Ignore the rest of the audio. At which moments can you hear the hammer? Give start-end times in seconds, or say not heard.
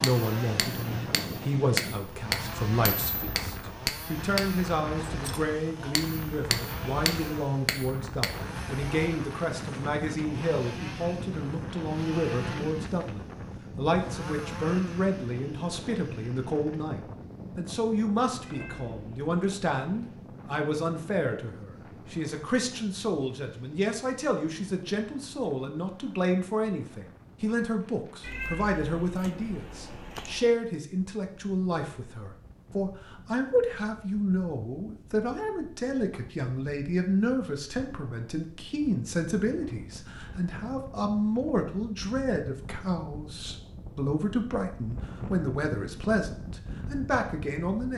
0.0-8.4.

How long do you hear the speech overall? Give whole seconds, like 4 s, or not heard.
48 s.